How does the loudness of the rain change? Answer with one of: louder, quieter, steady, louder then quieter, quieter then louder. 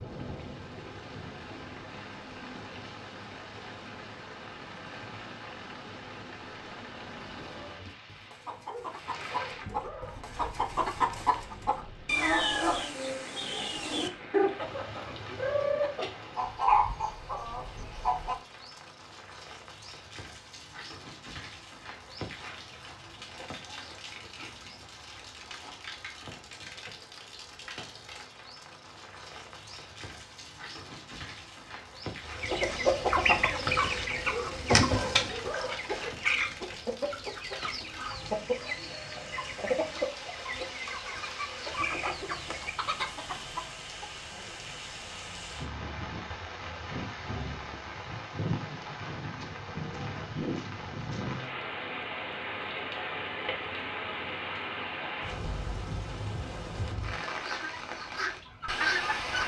louder.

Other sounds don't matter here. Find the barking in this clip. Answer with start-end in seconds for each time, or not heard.
8.4-10.5, 34.1-36.1.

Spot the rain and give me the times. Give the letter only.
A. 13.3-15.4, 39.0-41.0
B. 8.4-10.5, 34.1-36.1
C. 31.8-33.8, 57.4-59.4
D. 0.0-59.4
D.